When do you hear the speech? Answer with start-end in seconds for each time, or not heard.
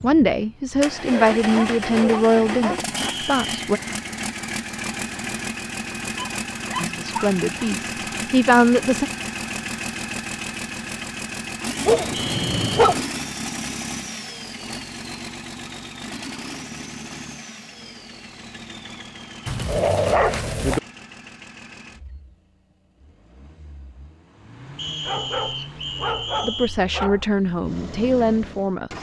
0.0-3.8, 6.8-9.1, 26.4-28.9.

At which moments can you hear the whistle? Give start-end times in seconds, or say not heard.
3.0-3.6, 12.1-12.8, 24.8-26.8.